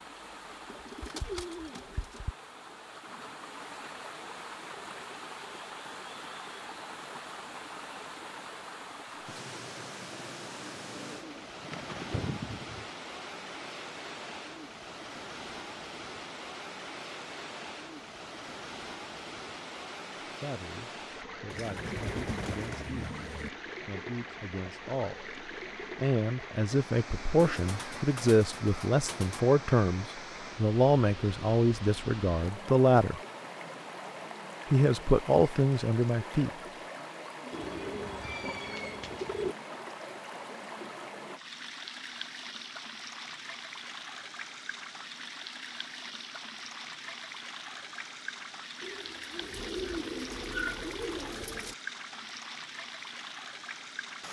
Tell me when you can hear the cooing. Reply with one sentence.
You can hear the cooing from 0.7 to 2.4 s, from 10.1 to 12.8 s, from 21.5 to 23.5 s, from 27.4 to 29.4 s, from 37.5 to 39.5 s and from 48.8 to 51.8 s.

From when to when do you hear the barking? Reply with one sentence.
You can't hear the barking here.